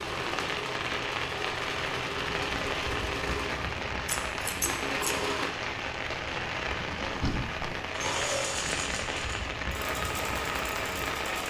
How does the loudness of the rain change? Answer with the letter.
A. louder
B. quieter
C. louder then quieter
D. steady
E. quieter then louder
D.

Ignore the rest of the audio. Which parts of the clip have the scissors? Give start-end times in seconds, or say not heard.
4.0-5.2.